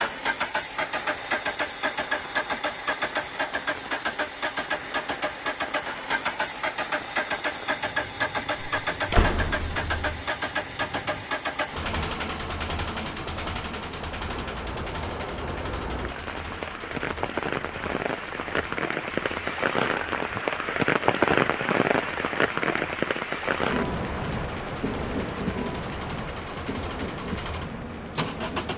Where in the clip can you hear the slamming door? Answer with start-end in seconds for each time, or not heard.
8.8-10.2.